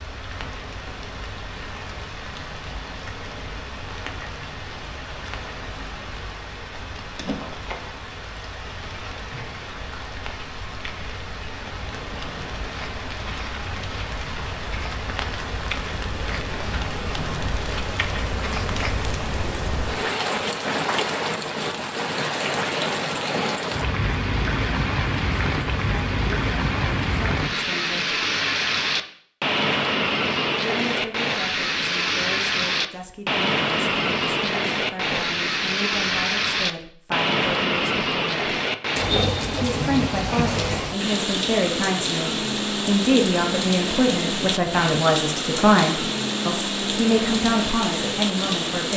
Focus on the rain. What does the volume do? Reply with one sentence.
The loudness of the rain goes up.